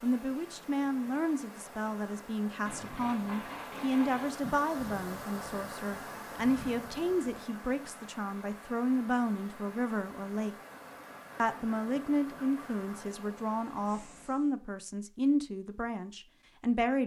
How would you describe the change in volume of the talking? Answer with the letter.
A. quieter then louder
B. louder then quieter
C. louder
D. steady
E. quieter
D.